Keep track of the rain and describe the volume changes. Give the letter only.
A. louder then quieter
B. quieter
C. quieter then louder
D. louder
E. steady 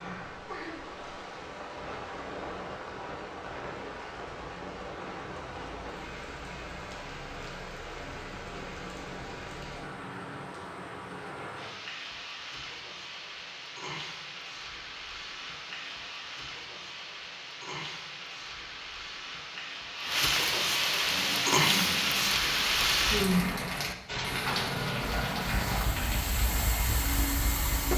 D.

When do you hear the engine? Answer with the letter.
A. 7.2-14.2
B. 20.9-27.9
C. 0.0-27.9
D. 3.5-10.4
B.